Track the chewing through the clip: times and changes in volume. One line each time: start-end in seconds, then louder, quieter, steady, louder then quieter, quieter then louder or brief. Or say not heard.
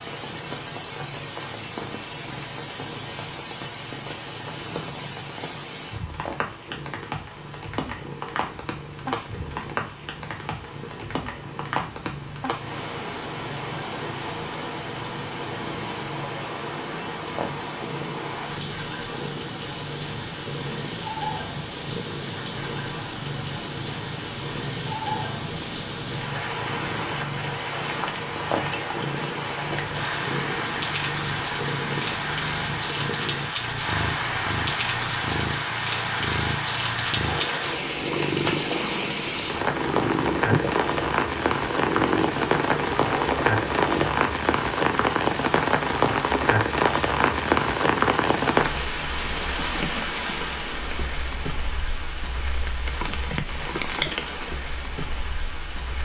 not heard.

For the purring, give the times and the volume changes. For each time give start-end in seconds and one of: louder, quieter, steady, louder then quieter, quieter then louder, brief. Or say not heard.
0.0-44.1 louder.